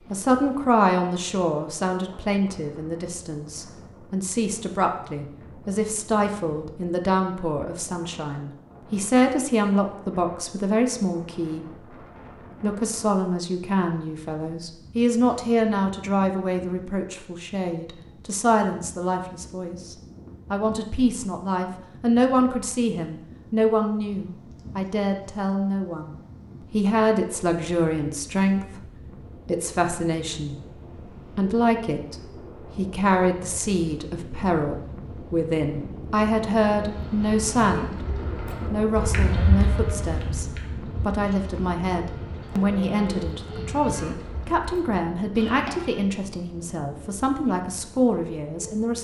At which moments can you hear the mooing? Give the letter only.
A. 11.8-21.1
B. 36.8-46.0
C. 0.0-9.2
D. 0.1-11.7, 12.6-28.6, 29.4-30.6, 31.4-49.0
B.